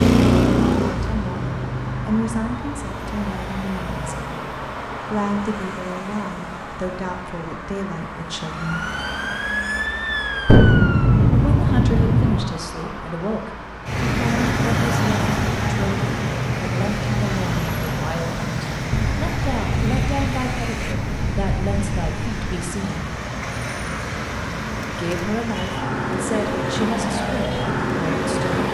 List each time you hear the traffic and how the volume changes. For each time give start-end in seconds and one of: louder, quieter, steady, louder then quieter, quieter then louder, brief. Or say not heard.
0.0-28.6 quieter then louder.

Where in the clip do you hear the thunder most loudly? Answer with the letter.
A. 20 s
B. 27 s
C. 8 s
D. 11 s
D.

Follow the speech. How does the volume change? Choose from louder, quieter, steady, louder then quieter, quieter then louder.
steady.